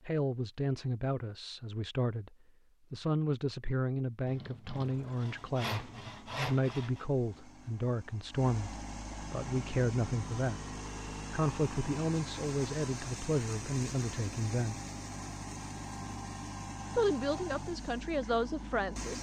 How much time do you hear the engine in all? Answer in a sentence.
The engine can be heard for 14 seconds in total.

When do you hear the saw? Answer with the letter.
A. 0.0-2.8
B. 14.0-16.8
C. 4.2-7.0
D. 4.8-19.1
C.